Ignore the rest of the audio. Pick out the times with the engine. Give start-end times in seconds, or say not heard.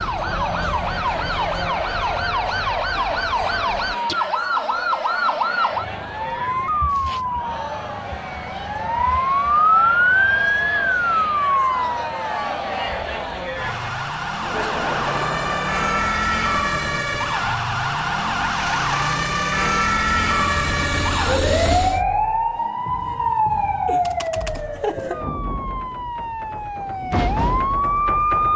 18.4-22.1.